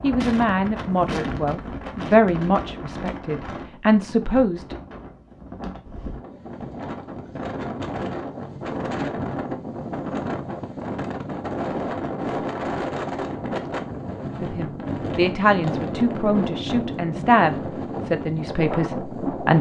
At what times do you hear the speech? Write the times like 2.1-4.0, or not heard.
0.0-4.8, 14.4-19.5.